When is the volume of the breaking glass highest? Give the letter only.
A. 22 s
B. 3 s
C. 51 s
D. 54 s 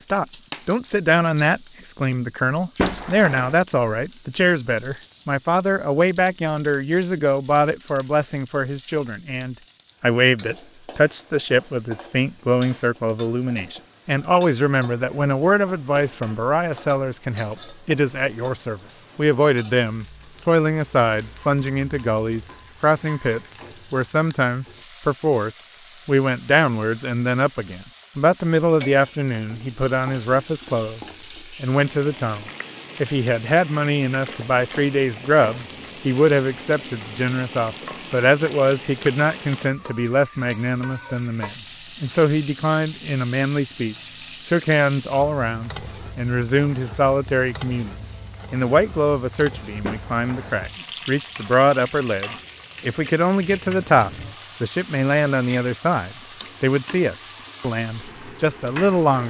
B.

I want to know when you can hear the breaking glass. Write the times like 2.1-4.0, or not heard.
2.8-3.5, 49.8-50.5.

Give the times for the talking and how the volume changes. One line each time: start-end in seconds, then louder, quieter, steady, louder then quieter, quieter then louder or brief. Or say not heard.
0.0-59.2 steady.